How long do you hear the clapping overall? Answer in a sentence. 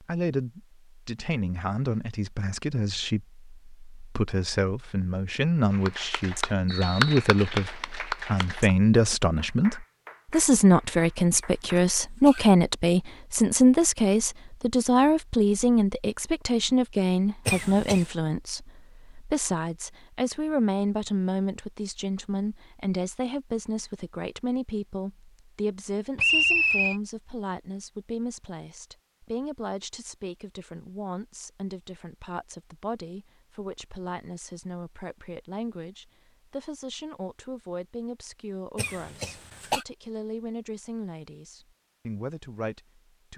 The clapping can be heard for 6 seconds in total.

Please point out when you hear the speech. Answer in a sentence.
You can hear the speech from 0.0 to 43.3 s.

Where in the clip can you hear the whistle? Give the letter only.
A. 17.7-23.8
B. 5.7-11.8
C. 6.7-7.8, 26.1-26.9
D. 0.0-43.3
C.